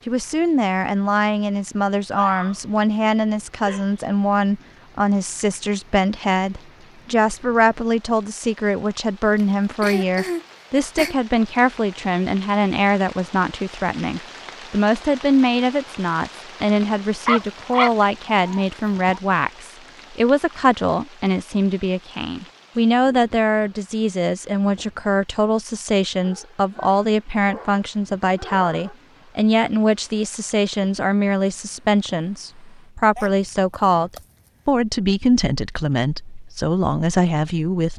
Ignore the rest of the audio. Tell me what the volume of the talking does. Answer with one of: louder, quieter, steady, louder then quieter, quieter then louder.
steady.